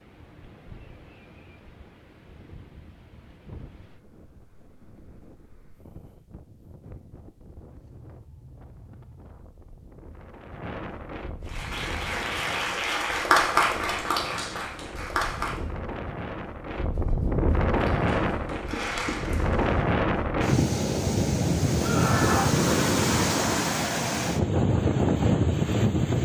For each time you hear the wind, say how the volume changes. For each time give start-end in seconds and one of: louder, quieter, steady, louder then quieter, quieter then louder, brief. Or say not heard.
0.0-26.2 louder.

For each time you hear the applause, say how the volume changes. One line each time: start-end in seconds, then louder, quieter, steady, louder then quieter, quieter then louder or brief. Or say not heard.
11.4-15.7 louder then quieter
17.8-19.9 brief.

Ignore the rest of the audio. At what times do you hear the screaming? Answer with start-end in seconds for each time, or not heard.
21.8-22.6.